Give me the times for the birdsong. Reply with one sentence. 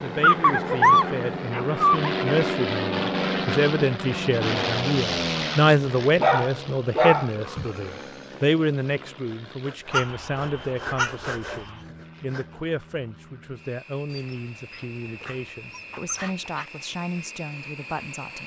You can't hear the birdsong here.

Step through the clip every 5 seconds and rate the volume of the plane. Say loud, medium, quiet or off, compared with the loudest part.
loud, medium, quiet, quiet.